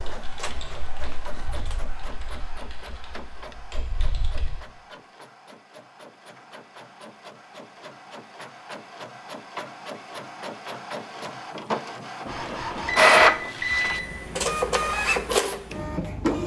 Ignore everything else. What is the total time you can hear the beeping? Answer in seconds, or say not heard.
2 s.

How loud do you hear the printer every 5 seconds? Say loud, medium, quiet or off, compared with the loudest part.
quiet, quiet, loud, loud.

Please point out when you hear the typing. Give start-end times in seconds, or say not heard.
0.0-4.6.